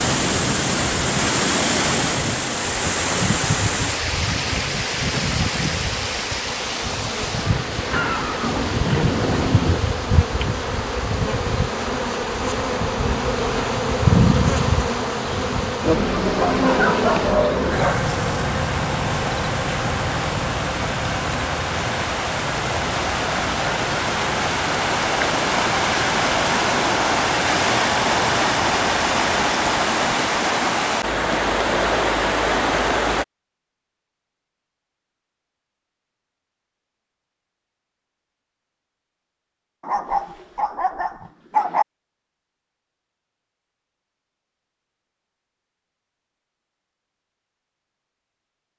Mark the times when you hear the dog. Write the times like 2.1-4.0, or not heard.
16.4-18.0, 39.8-41.9.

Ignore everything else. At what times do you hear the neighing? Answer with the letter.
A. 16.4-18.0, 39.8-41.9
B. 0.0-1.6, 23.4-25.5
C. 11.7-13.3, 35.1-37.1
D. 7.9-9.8
D.